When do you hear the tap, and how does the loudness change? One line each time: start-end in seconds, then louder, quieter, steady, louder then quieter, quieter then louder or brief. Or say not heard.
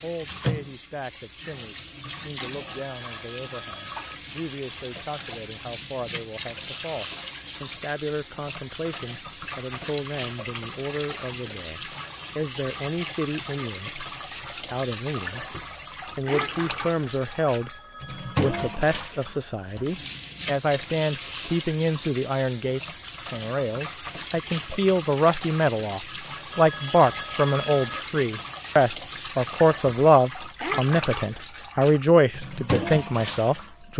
0.0-33.9 steady.